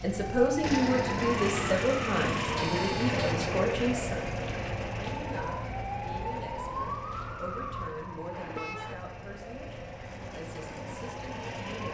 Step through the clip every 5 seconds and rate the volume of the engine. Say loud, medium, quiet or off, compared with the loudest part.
loud, medium, medium.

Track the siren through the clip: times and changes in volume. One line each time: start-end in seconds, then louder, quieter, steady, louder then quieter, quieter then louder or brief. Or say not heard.
0.0-11.8 quieter.